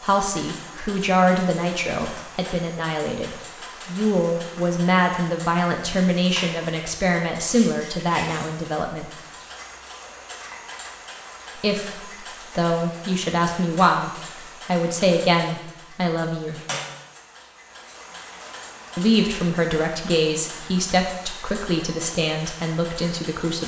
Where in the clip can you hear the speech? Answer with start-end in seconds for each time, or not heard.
0.0-9.2, 11.6-16.6, 18.9-23.6.